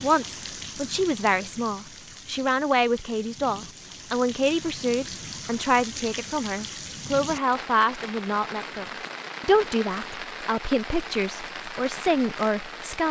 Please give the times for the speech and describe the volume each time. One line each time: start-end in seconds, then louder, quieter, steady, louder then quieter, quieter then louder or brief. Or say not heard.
0.0-13.0 steady.